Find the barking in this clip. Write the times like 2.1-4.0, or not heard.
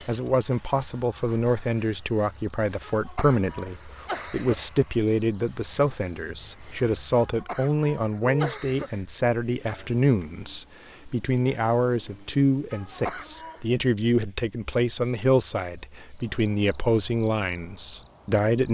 not heard.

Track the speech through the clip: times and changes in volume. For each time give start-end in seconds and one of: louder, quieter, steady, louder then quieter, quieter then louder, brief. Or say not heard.
0.1-18.7 steady.